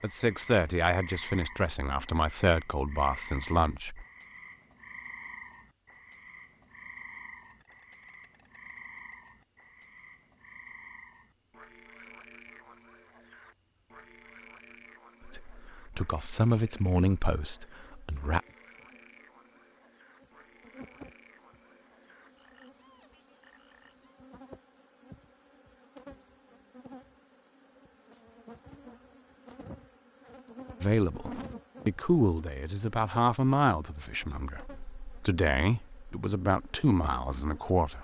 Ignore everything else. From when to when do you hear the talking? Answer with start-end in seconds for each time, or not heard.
0.0-4.0, 15.2-18.4, 30.8-37.9.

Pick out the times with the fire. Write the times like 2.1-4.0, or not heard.
not heard.